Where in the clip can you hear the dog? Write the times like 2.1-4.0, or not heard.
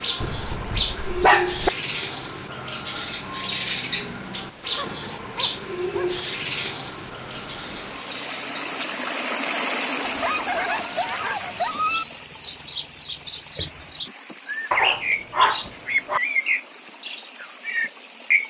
0.2-1.7, 4.7-6.2, 10.0-12.1, 14.7-16.2.